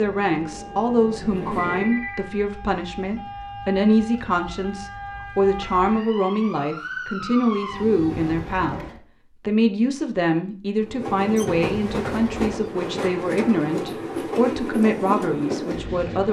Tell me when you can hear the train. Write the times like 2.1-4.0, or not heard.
0.0-2.0, 10.8-16.2.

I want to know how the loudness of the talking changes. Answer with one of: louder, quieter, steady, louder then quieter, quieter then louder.
steady.